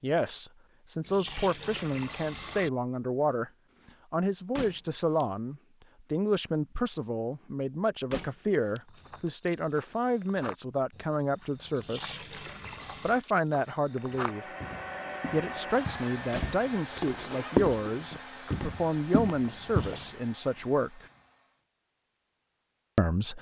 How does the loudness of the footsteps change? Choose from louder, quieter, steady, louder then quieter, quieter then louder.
louder.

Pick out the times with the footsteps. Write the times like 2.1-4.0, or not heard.
8.8-20.0.